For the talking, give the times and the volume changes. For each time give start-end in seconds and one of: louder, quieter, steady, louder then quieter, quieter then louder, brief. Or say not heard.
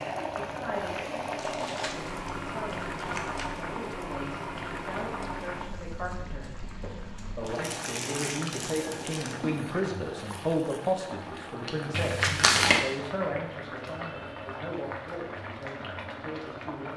0.2-16.9 louder then quieter.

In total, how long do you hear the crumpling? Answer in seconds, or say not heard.
5 s.